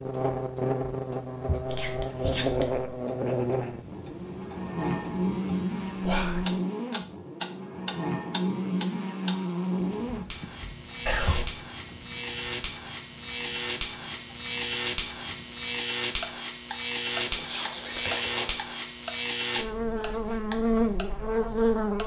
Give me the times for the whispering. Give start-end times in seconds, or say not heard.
1.6-2.9, 6.0-6.5, 11.1-11.5, 17.2-18.6.